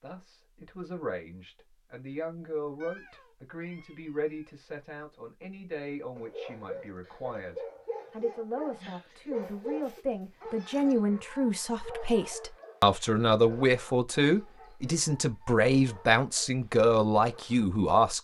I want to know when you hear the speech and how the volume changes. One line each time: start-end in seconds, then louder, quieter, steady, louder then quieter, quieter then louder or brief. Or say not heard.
0.0-18.1 louder.